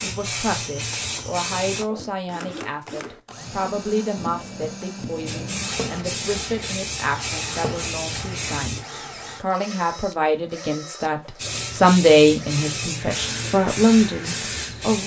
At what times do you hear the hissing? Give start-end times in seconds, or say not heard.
0.0-1.9, 5.2-8.8, 11.3-15.0.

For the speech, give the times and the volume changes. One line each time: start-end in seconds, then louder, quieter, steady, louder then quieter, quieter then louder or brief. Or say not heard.
0.0-15.0 louder.